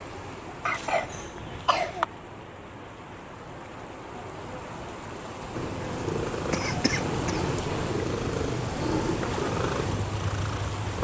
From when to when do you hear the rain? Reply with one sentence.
The rain can be heard from 0.0 to 10.9 s.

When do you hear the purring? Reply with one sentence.
You can hear the purring from 5.5 to 10.9 s.